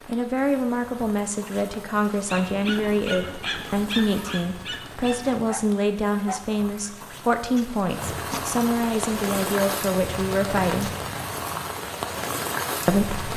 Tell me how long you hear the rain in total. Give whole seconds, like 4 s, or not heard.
13 s.